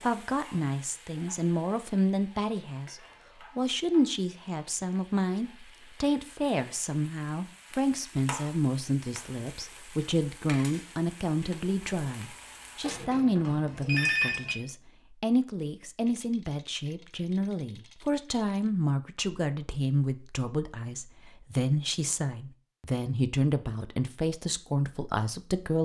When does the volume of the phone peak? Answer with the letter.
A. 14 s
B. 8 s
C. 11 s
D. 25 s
A.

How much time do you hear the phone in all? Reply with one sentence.
The phone can be heard for 2 seconds in total.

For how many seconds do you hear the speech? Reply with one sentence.
The speech can be heard for 26 seconds in total.